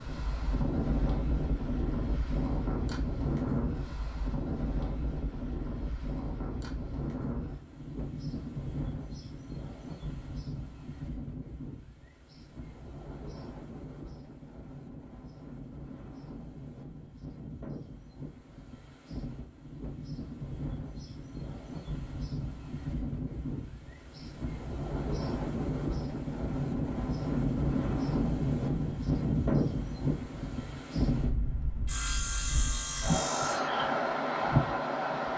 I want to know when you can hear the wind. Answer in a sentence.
You can hear the wind from 0.0 to 35.3 s.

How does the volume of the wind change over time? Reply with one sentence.
The volume of the wind goes down, then up.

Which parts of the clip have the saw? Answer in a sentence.
The saw can be heard from 31.9 to 33.7 s.